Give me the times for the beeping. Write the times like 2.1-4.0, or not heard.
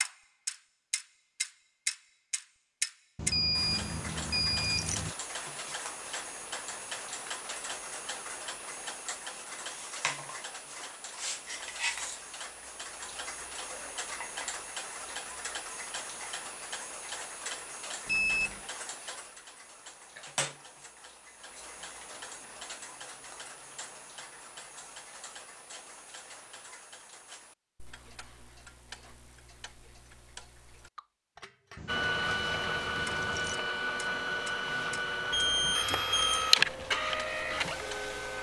3.3-4.9, 18.1-18.6, 35.3-36.5.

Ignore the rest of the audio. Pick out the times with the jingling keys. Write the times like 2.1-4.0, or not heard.
3.1-5.2, 31.8-33.5.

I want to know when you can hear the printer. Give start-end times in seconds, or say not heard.
31.9-38.3.